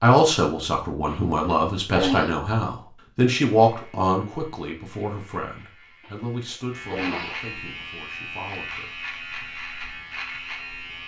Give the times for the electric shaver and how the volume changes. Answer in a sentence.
The electric shaver can be heard from 3.6 to 11.0 s, getting louder.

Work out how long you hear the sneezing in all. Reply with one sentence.
You can hear the sneezing for 3 seconds altogether.